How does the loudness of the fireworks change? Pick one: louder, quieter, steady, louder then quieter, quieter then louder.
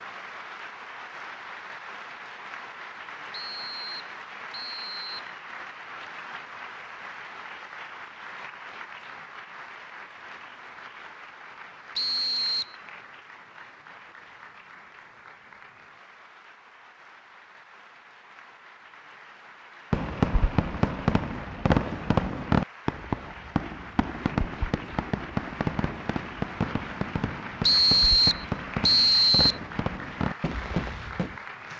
quieter.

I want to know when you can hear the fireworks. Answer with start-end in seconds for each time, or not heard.
19.9-31.4.